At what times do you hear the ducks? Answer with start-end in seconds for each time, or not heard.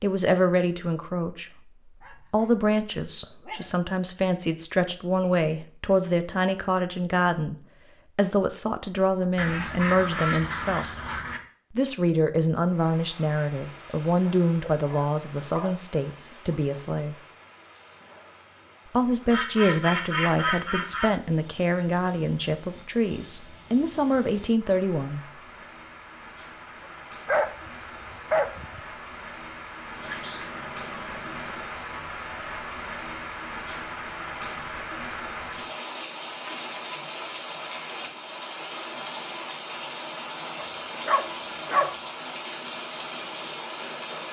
9.3-11.4, 19.3-21.1, 29.9-31.7.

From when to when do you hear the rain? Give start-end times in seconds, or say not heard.
12.6-44.2.